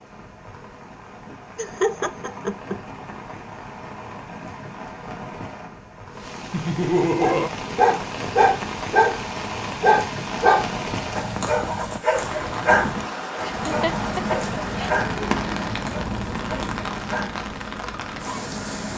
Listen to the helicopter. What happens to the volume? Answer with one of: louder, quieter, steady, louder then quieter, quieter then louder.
quieter.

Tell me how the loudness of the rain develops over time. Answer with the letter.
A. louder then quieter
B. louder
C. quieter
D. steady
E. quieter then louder
B.